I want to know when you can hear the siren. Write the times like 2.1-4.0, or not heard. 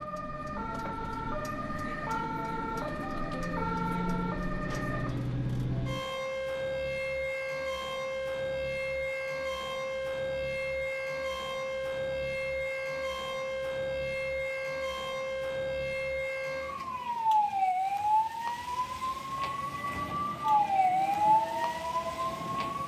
0.0-22.8.